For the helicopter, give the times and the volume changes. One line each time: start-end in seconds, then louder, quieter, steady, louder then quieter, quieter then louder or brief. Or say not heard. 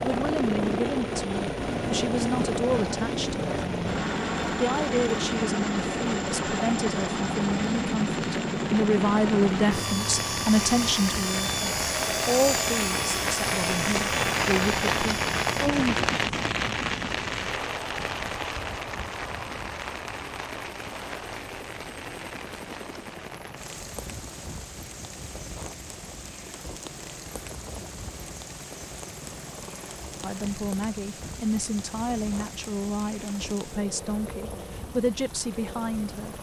0.0-36.3 quieter.